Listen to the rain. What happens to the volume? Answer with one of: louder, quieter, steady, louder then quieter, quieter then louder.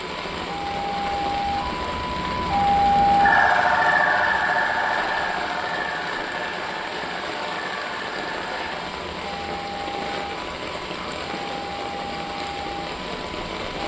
steady.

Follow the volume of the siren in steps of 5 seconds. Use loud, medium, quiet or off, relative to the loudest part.
loud, medium, quiet.